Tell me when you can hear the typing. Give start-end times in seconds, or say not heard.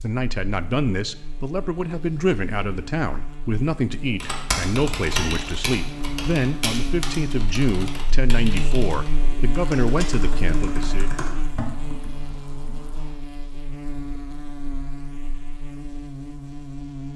4.2-13.1.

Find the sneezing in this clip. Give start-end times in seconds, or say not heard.
not heard.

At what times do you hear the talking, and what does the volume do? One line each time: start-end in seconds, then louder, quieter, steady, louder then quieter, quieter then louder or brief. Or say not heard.
0.0-11.1 steady.